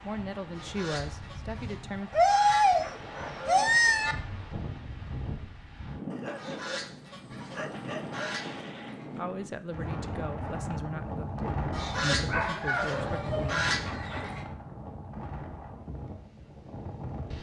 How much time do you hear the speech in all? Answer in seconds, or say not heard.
7 s.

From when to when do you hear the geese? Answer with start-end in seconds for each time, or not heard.
0.5-2.6, 6.3-9.2, 11.7-14.4.